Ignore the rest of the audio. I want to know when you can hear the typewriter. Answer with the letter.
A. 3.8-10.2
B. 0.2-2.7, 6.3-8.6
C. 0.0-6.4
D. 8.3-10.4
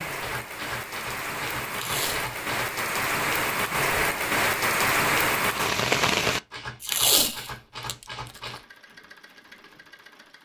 B.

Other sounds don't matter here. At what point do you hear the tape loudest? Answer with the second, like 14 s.
7 s.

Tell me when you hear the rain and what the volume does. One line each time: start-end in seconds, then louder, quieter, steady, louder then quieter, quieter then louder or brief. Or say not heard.
0.0-6.4 louder.